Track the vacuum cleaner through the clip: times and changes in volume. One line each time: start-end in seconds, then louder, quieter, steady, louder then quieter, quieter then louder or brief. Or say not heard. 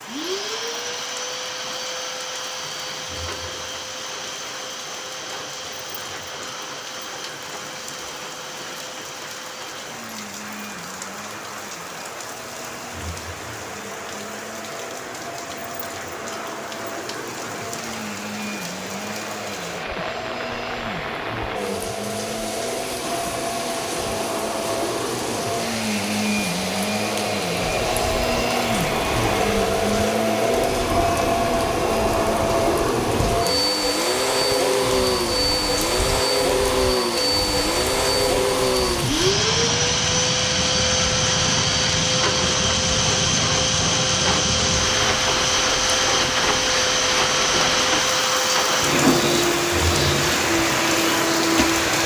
0.0-52.0 louder.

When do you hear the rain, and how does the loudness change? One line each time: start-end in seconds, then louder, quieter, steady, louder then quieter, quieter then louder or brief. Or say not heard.
0.0-52.0 louder.